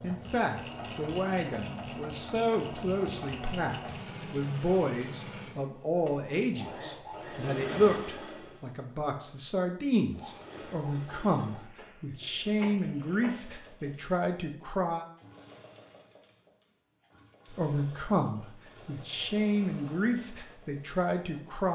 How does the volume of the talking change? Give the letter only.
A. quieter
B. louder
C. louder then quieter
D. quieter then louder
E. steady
E.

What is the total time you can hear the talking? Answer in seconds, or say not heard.
19 s.